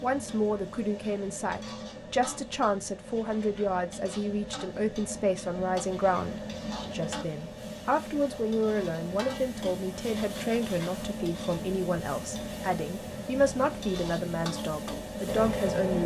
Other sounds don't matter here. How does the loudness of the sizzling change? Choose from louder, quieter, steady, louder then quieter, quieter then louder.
louder.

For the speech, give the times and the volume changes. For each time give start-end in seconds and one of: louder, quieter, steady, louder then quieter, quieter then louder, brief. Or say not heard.
0.0-16.0 steady.